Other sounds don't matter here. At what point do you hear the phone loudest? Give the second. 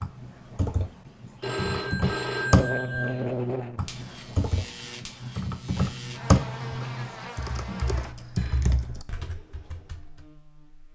2 s.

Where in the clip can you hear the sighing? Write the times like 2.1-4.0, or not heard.
not heard.